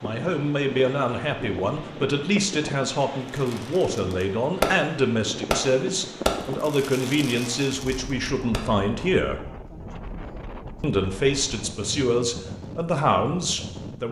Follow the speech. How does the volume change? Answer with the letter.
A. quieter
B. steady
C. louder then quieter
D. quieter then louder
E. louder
B.